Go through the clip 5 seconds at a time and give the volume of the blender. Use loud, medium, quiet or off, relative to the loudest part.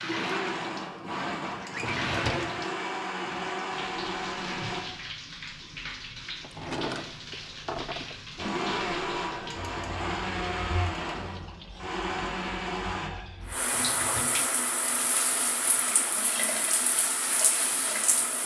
loud, loud, loud, off.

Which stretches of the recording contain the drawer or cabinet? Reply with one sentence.
You can hear the drawer or cabinet from 1.7 to 2.6 s, from 6.4 to 8.2 s and from 13.7 to 14.5 s.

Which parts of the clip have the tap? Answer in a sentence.
The tap can be heard from 0.0 to 18.4 s.